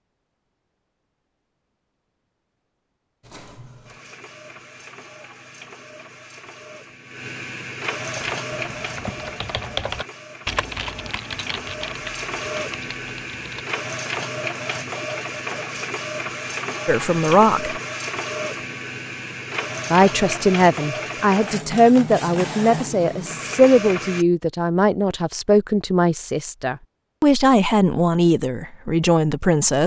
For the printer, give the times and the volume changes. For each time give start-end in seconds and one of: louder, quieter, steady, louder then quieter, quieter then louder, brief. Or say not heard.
3.2-24.2 louder.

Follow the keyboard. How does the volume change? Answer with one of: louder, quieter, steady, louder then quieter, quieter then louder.
louder then quieter.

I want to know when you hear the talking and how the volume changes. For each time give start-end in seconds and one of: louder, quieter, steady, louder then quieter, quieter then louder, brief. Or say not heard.
16.9-17.8 brief
19.9-29.8 steady.